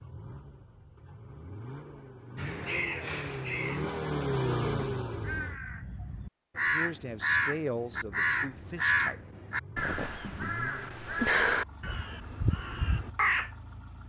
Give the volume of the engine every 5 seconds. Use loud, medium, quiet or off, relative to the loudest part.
loud, medium, quiet.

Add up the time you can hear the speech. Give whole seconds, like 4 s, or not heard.
3 s.